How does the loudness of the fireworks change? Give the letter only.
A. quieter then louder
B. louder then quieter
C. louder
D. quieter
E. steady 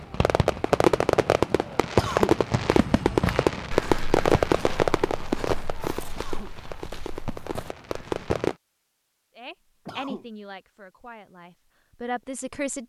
D.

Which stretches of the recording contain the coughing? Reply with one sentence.
You can hear the coughing from 1.9 to 2.4 s, from 6.1 to 6.5 s and from 9.8 to 10.2 s.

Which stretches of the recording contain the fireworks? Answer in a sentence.
You can hear the fireworks from 0.0 to 8.6 s.